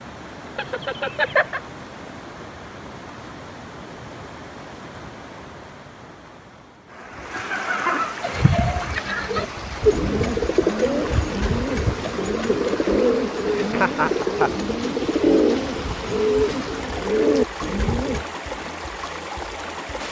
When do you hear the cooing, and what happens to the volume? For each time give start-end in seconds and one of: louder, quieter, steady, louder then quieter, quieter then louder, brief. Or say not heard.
8.2-18.2 steady.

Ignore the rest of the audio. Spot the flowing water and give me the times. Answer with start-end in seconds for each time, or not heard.
0.0-20.0.